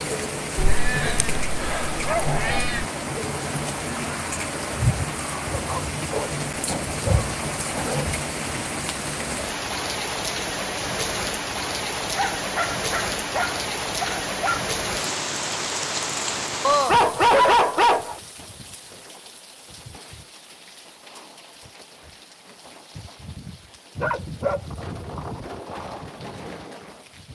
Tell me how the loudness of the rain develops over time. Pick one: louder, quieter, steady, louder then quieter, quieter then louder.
quieter.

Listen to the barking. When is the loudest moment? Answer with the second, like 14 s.
17 s.